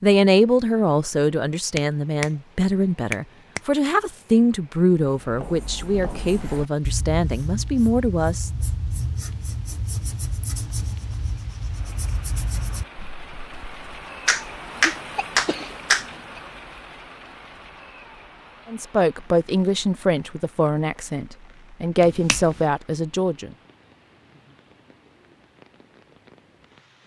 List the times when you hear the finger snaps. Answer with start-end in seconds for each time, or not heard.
1.8-2.2, 3.1-3.6, 14.2-16.1, 22.0-22.6.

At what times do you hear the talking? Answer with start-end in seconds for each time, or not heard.
0.0-8.5, 18.6-23.6.